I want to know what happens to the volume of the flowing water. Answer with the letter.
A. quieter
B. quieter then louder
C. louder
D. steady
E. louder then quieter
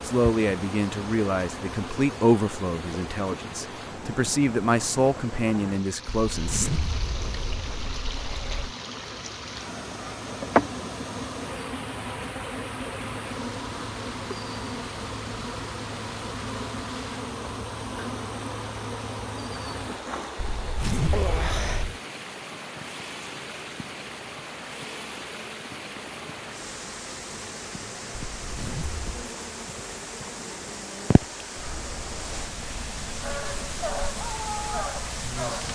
D.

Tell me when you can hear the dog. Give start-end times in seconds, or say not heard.
33.2-35.7.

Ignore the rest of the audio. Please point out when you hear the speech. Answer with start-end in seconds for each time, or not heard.
0.0-6.7.